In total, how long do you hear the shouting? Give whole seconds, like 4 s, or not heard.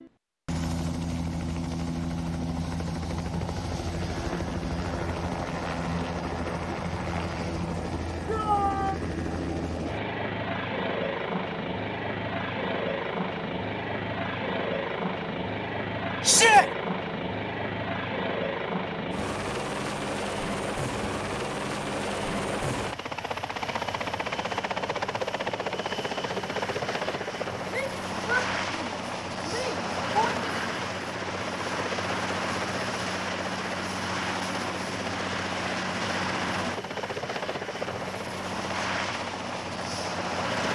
4 s.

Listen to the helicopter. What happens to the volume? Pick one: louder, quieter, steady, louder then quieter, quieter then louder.
steady.